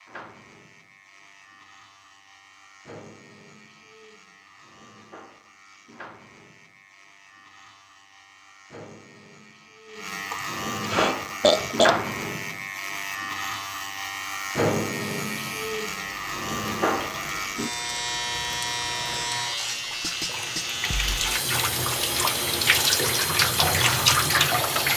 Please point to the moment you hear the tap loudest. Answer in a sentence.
The loudest moment of the tap is at 24 seconds.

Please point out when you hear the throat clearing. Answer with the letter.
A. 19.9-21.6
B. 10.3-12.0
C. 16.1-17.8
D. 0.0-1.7
B.